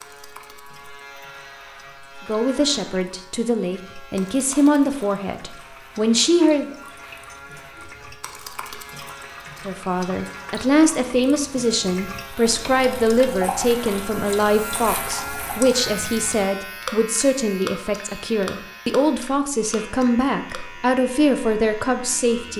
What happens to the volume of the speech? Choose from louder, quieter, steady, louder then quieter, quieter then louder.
steady.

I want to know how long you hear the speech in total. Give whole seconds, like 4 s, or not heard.
17 s.